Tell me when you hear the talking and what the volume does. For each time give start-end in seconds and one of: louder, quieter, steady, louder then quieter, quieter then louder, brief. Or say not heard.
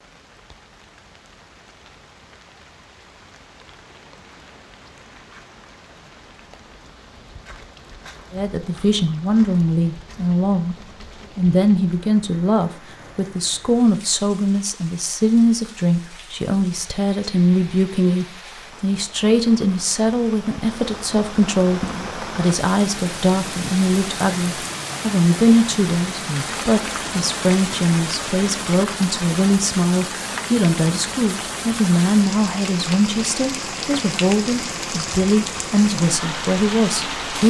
8.3-37.4 steady.